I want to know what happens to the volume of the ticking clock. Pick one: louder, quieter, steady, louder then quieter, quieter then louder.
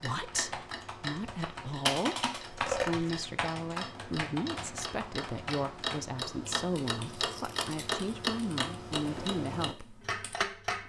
louder.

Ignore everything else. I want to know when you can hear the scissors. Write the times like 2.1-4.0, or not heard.
2.5-3.1, 7.1-7.8.